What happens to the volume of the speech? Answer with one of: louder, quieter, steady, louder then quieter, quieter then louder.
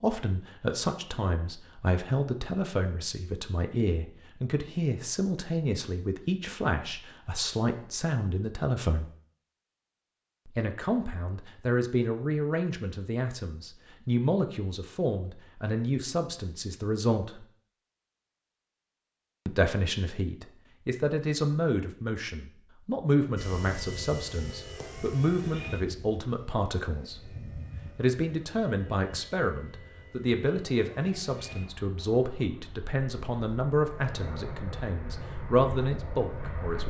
steady.